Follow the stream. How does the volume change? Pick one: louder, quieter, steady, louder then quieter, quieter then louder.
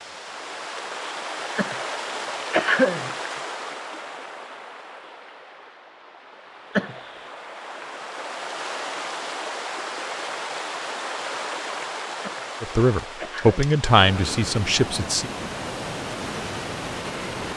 quieter then louder.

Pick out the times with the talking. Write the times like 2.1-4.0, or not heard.
12.6-15.3.